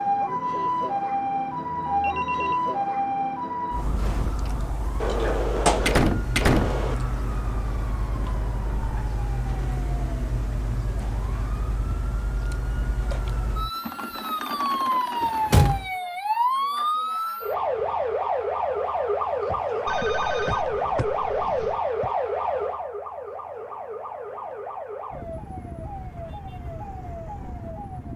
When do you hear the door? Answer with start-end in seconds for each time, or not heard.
5.0-7.0, 15.2-15.9, 19.4-22.1.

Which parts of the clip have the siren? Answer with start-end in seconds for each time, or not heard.
0.0-28.1.